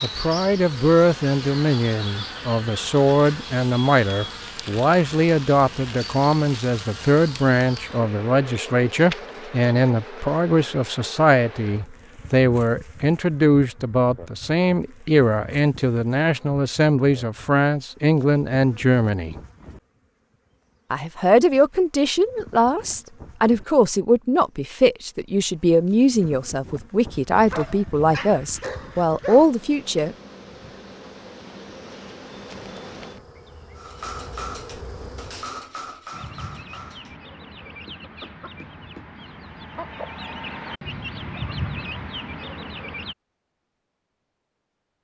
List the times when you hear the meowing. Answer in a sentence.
You can't hear the meowing here.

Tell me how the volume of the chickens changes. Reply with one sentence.
The volume of the chickens goes up.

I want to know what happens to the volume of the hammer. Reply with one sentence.
The volume of the hammer goes down.